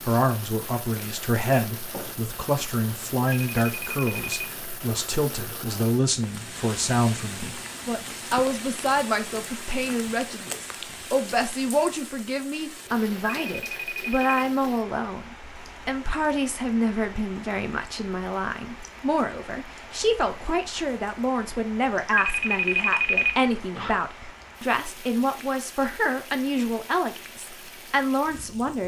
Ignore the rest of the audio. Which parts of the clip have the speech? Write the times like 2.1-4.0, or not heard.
0.0-28.8.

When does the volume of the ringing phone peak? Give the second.
23 s.